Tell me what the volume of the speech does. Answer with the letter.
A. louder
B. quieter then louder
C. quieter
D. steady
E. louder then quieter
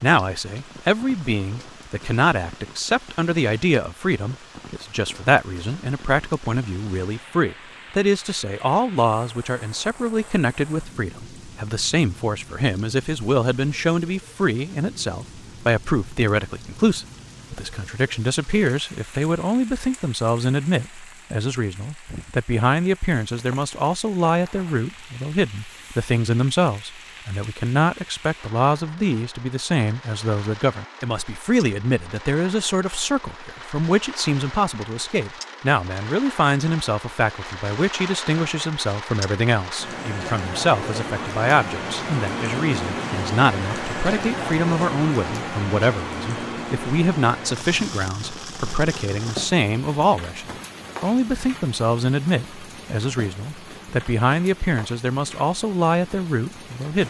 D.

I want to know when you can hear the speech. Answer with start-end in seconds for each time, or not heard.
0.0-57.0.